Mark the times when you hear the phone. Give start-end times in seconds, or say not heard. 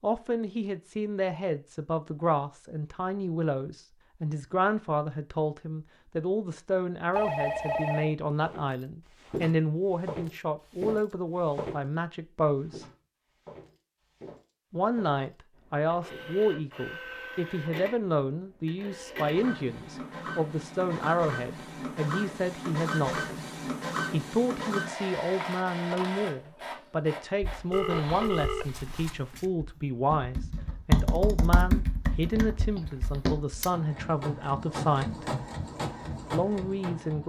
7.2-8.1, 27.7-29.4.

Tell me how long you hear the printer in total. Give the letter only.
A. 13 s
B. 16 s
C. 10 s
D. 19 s
B.